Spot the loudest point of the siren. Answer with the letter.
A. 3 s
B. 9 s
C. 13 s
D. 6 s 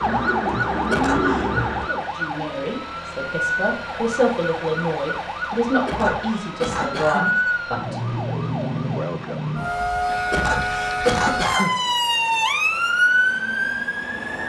C.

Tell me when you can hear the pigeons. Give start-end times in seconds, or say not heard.
0.0-1.9.